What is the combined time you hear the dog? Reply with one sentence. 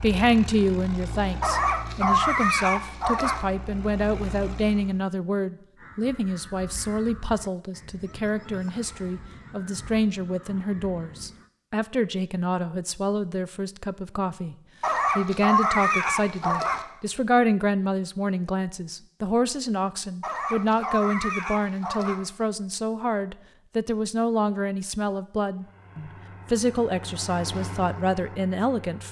The dog can be heard for 6 seconds in total.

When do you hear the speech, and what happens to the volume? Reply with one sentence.
You can hear the speech from 0.0 to 14.6 s, at a steady volume; and from 15.2 to 29.0 s, at a steady volume.